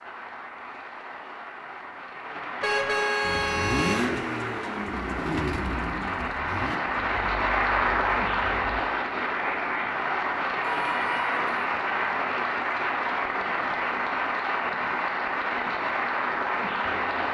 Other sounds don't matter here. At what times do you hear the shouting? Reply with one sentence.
The shouting can't be heard in this clip.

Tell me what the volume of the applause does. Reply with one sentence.
The loudness of the applause goes up.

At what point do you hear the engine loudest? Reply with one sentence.
The volume of the engine peaks at 4 seconds.